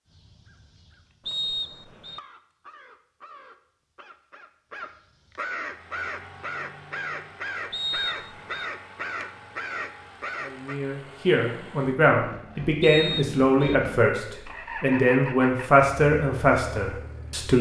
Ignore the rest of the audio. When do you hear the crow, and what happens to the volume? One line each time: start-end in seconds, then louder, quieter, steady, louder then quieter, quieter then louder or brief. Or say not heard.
0.1-10.8 louder.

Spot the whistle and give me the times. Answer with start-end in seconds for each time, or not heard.
1.2-2.2, 7.7-8.7, 12.8-13.8.